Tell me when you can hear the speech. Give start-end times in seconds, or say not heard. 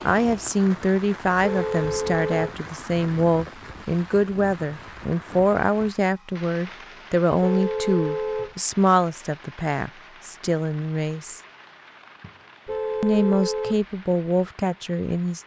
0.0-11.4, 13.0-15.4.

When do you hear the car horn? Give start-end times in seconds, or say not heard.
1.4-2.5, 7.4-8.6, 12.7-13.8.